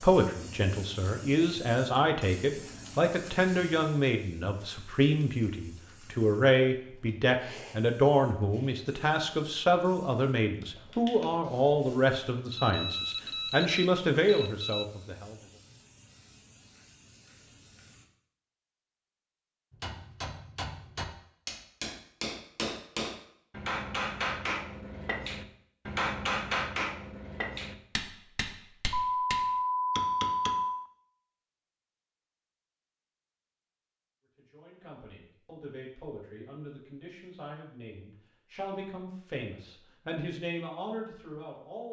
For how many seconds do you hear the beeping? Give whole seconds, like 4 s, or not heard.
4 s.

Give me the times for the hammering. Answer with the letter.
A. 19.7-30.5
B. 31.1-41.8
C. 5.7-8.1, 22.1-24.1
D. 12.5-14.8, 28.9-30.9
A.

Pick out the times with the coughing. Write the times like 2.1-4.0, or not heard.
not heard.